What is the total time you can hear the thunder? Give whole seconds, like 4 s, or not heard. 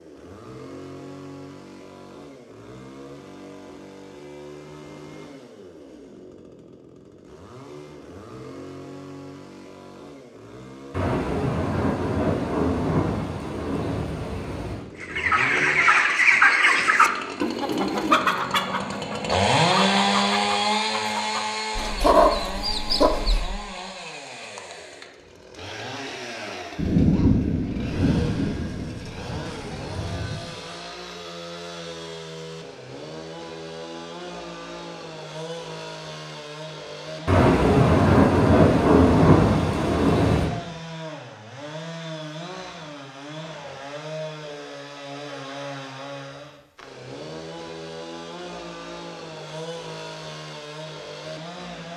11 s.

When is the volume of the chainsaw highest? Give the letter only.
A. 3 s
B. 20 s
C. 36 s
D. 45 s
B.